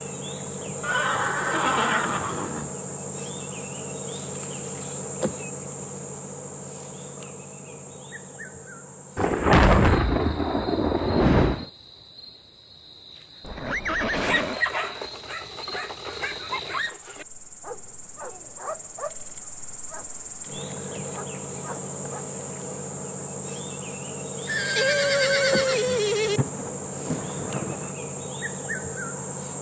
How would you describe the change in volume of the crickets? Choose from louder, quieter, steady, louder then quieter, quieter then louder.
quieter then louder.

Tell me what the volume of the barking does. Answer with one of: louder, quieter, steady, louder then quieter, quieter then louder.
quieter.